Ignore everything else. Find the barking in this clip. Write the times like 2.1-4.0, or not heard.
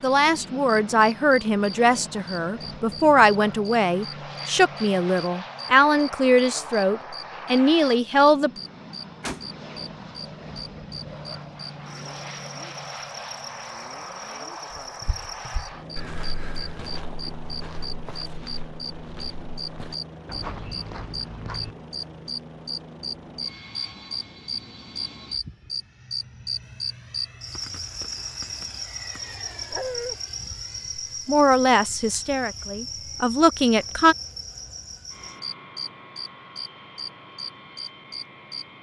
29.7-30.1.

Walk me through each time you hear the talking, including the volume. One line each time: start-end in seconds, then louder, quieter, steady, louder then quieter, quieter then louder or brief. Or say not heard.
0.0-8.5 steady
31.2-34.1 brief.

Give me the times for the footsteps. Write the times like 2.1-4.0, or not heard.
14.8-21.8.